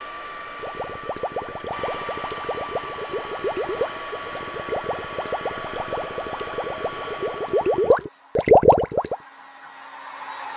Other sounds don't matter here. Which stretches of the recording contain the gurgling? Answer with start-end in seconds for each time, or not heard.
0.6-9.2.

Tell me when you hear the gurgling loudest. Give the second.
9 s.